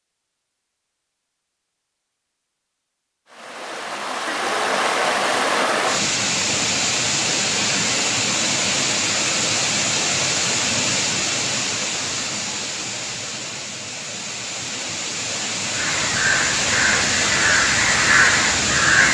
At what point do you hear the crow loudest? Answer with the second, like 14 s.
18 s.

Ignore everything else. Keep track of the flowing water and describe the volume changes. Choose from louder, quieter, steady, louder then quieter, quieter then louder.
quieter then louder.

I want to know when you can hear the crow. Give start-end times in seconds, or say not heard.
15.7-19.0.